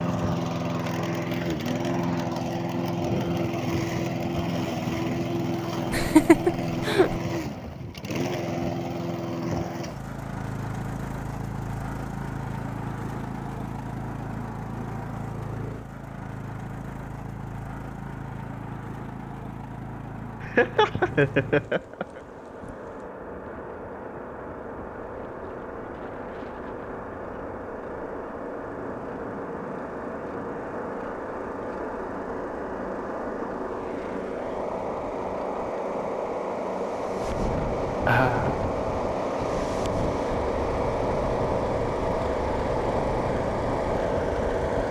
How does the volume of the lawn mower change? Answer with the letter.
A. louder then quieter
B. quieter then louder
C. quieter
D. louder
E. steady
B.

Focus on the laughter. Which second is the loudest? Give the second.
6 s.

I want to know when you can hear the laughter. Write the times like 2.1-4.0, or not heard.
5.9-7.2, 20.4-22.2, 38.0-38.5.